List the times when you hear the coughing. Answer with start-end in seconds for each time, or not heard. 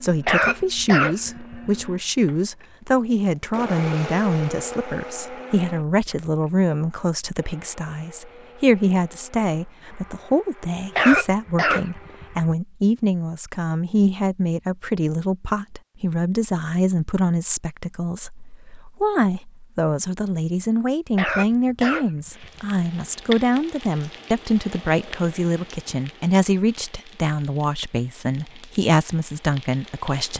0.2-1.9, 10.9-12.6, 21.1-22.6.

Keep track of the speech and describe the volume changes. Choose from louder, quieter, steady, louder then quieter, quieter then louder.
steady.